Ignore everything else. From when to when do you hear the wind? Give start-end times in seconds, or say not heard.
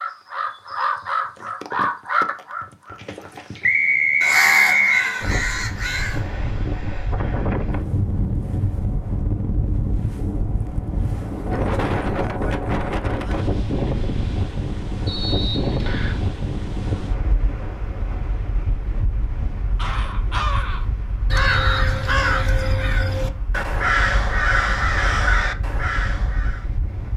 5.2-27.1.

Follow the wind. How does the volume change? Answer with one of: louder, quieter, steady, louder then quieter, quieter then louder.
quieter.